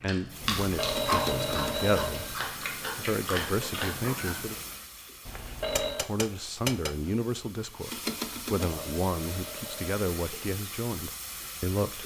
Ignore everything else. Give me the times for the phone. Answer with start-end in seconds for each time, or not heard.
0.4-2.4, 5.2-6.1, 8.2-9.9.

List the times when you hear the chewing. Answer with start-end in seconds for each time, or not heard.
0.0-4.8.